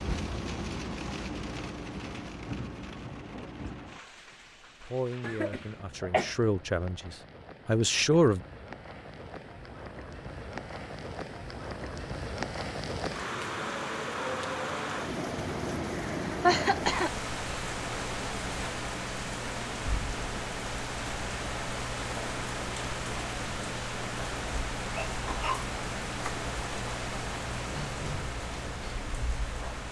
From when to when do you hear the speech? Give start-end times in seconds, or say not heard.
4.8-8.4.